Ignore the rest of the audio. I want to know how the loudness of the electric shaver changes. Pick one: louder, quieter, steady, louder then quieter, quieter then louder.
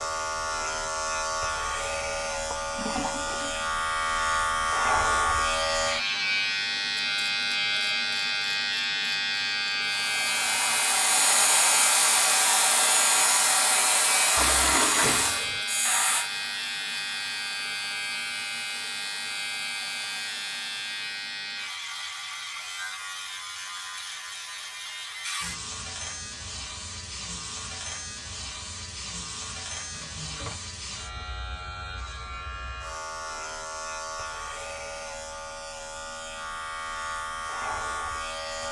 quieter.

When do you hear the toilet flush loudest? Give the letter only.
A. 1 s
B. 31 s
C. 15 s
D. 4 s
C.